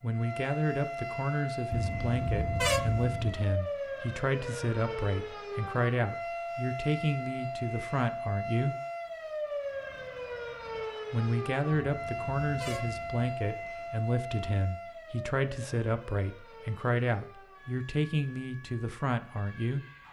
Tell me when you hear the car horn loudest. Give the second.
3 s.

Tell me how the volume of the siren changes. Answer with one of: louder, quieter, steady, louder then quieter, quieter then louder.
quieter.